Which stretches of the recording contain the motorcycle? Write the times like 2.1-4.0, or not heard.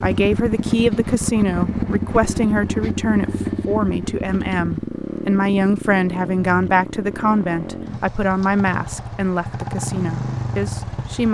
0.0-11.2.